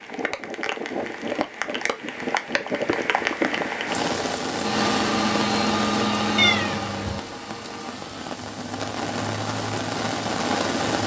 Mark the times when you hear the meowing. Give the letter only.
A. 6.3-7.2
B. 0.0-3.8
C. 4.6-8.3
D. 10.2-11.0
A.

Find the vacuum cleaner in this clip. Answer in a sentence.
You can hear the vacuum cleaner from 4.6 to 8.3 s.